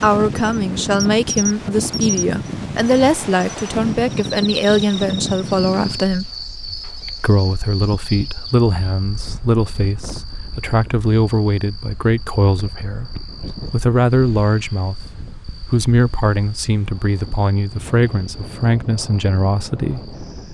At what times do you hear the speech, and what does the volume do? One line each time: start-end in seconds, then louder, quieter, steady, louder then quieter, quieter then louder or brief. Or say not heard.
0.0-6.3 steady
7.2-20.4 steady.